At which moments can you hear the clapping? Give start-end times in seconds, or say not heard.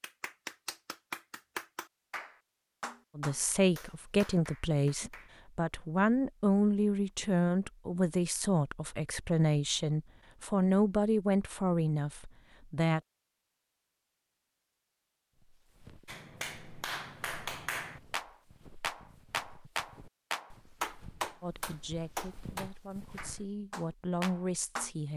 0.0-5.3, 16.1-24.9.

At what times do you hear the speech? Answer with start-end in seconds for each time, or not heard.
3.1-13.0, 21.4-25.1.